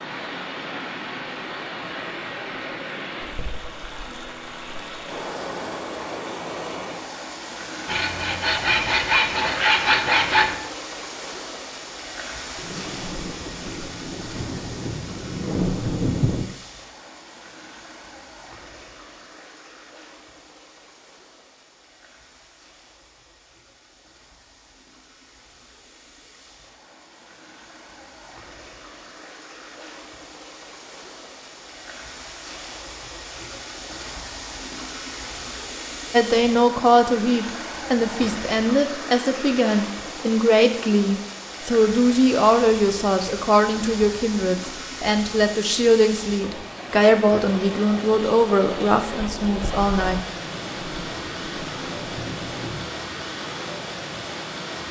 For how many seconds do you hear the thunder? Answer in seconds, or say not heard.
7 s.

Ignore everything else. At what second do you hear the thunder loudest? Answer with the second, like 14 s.
16 s.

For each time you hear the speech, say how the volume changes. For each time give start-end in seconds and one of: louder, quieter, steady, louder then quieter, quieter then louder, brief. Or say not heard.
36.1-50.2 steady.